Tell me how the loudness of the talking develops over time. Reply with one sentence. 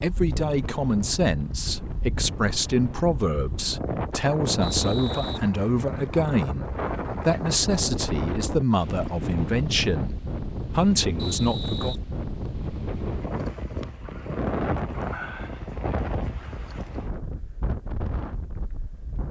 The loudness of the talking stays about the same.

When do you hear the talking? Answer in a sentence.
You can hear the talking from 0.0 to 11.9 s.